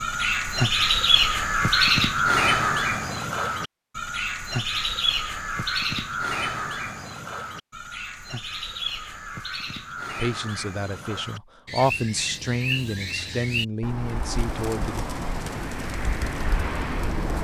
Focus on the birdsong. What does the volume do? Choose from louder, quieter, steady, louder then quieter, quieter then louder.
quieter.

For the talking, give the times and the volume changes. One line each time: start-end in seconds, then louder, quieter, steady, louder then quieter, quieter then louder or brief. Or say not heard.
10.2-15.1 louder then quieter.